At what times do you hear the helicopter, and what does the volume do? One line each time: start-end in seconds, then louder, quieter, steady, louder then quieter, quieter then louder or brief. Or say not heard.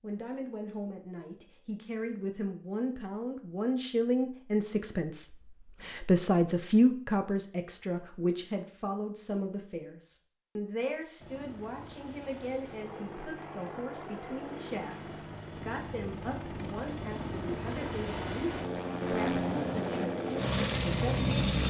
11.2-21.6 louder.